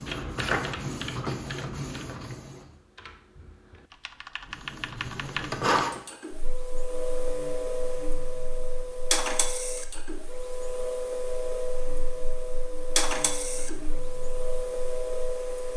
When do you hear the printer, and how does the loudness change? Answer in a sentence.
The printer can be heard briefly from 0.0 to 2.7 s; and from 4.5 to 15.7 s, at a steady volume.